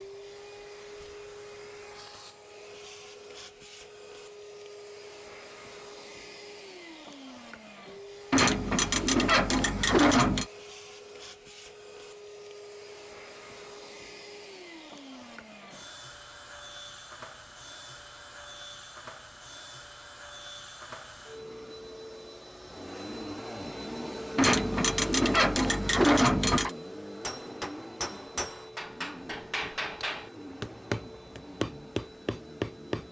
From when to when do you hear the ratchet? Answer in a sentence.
You can hear the ratchet from 8.3 to 10.4 s and from 24.4 to 26.7 s.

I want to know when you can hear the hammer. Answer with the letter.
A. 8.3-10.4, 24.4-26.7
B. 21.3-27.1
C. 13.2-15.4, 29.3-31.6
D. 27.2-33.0
D.